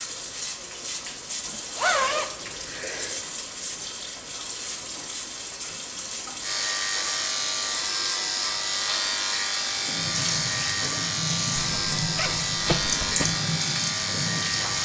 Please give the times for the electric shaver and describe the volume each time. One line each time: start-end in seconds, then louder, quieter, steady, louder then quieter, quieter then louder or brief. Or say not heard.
6.4-14.8 steady.